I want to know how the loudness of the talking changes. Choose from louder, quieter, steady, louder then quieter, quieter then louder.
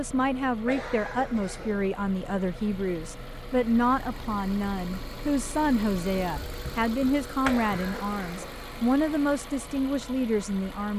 steady.